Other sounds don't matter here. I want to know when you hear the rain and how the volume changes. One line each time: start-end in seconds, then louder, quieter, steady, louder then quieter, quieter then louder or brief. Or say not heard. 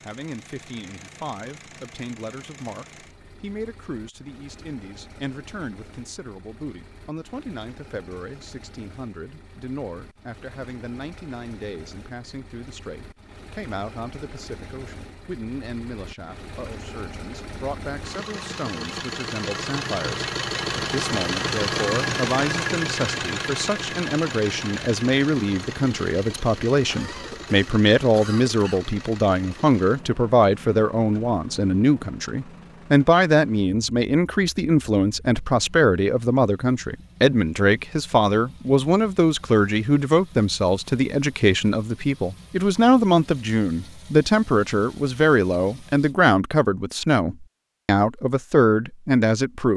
not heard.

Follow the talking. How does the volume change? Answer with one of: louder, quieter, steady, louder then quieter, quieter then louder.
louder.